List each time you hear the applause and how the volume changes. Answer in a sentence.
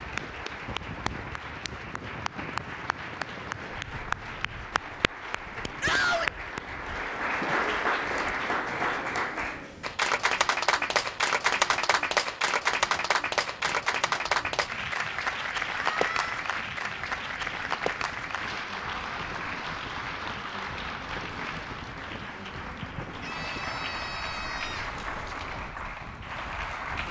You can hear the applause from 0.0 to 27.0 s, getting louder then quieter.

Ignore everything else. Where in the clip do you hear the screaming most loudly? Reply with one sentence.
The loudest moment of the screaming is at 6 seconds.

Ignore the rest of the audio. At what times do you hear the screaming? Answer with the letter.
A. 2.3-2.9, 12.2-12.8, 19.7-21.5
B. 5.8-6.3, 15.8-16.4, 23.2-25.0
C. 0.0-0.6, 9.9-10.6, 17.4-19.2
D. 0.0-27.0
B.